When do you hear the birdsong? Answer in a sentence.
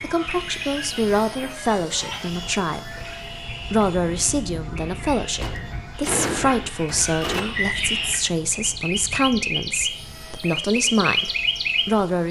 The birdsong can be heard from 0.0 to 12.2 s.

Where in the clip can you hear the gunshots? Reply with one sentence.
You can hear the gunshots from 5.4 to 7.4 s.